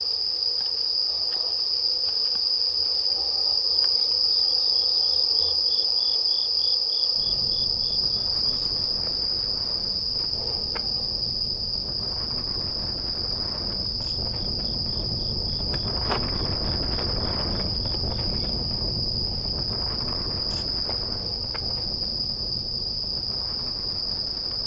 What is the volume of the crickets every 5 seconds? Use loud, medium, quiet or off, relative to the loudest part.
loud, loud, medium, medium, medium.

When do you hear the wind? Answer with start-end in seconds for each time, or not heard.
7.1-24.6.